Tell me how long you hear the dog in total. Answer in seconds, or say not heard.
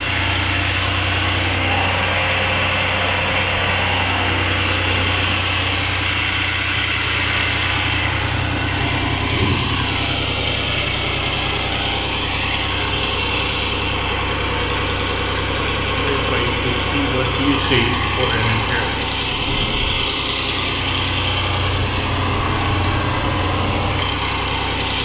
not heard.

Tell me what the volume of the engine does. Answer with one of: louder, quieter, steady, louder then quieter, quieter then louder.
steady.